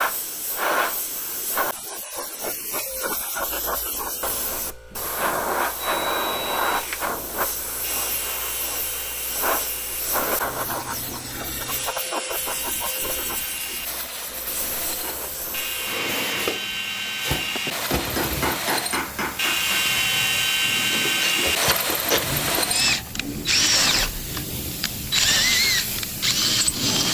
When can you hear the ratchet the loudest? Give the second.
22 s.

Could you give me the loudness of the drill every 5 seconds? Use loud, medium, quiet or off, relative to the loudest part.
off, quiet, quiet, medium, loud, loud.